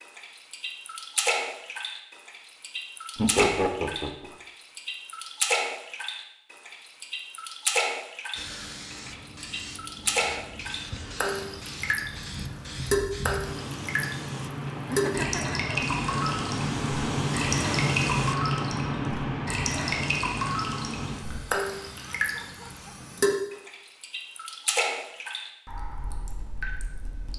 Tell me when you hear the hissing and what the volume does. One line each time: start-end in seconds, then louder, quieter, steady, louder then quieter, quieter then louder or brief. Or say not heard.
8.3-23.3 louder then quieter.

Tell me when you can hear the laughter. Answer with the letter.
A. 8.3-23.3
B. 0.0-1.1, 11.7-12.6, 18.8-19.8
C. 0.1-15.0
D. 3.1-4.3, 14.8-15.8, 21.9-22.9
D.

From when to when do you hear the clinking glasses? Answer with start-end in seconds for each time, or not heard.
not heard.